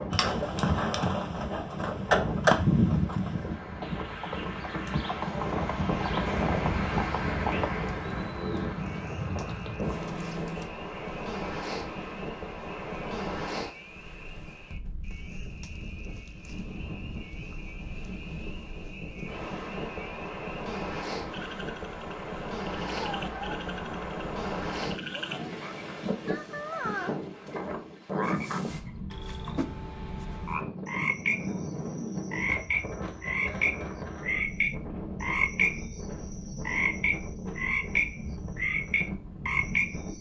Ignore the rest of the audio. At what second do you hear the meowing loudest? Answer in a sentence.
The volume of the meowing peaks at 23 seconds.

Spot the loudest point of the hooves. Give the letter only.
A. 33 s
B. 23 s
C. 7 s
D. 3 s
D.